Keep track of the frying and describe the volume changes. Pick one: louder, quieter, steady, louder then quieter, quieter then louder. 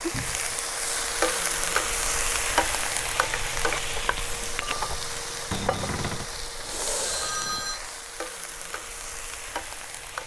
quieter.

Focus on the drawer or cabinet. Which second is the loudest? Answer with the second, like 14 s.
6 s.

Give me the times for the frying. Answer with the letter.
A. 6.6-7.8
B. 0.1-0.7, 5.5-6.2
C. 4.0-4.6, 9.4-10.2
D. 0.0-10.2
D.